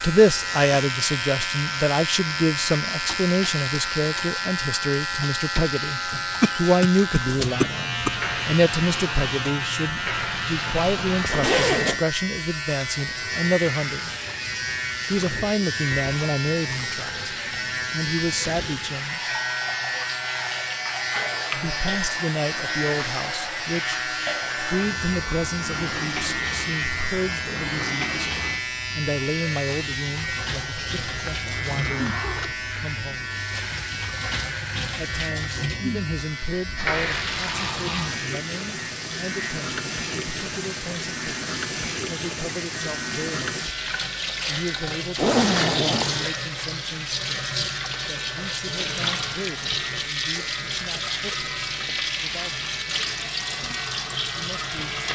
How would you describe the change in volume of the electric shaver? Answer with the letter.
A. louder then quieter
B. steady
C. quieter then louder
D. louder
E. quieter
E.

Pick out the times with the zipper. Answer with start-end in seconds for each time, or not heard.
11.1-12.1, 30.8-32.6, 45.1-46.2.